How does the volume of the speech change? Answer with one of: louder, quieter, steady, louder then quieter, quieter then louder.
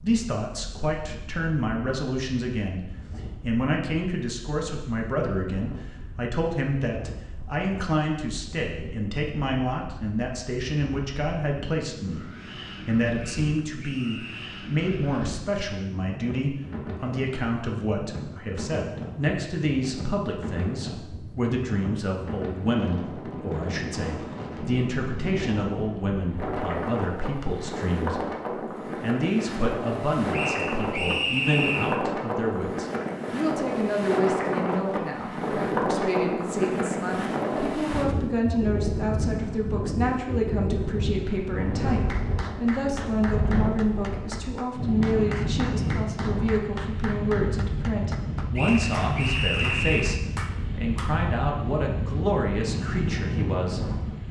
steady.